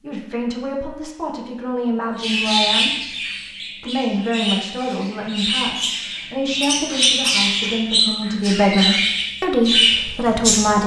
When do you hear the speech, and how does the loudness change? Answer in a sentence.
You can hear the speech from 0.0 to 10.8 s, getting louder.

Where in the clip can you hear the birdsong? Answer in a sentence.
You can hear the birdsong from 2.2 to 10.8 s.